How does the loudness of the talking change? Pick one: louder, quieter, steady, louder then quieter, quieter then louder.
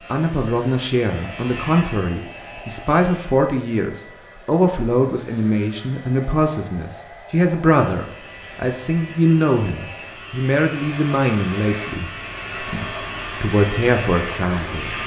steady.